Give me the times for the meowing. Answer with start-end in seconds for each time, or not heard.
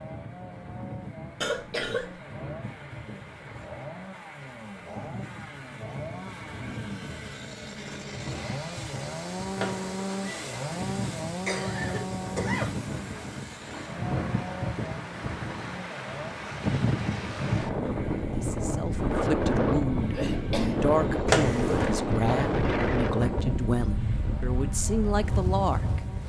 9.6-10.8, 21.2-21.9.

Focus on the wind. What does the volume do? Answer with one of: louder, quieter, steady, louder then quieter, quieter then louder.
louder.